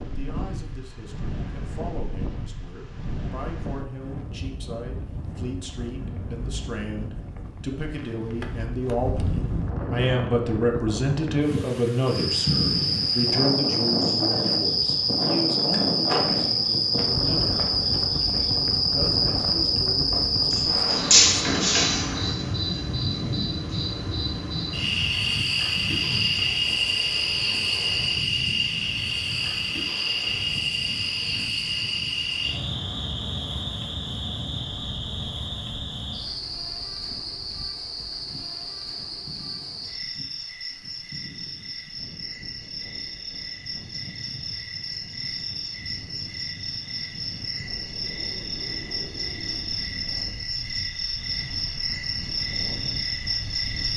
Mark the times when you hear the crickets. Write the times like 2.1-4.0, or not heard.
12.1-53.9.